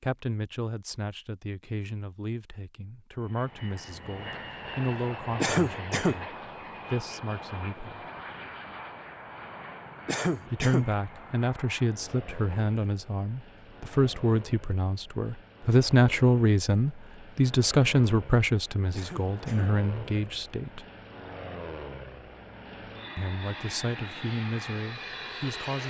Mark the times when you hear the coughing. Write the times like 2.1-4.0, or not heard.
5.4-6.2, 10.1-10.8, 18.9-19.7.